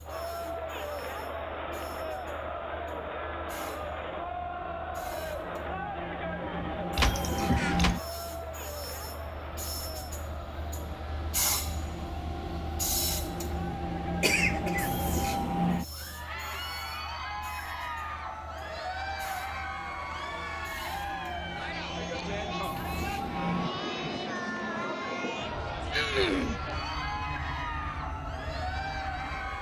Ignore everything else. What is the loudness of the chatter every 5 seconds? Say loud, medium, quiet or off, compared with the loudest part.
loud, loud, medium, loud, loud, loud.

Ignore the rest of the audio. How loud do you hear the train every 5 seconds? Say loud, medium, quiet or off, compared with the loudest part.
quiet, loud, loud, loud, loud, medium.